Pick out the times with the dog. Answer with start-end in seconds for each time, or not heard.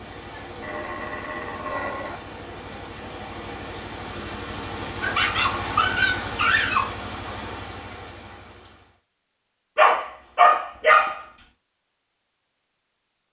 0.6-2.2, 5.0-7.0, 9.8-11.2.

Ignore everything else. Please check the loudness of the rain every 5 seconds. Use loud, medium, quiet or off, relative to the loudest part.
loud, loud, off.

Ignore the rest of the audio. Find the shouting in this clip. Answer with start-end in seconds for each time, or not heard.
not heard.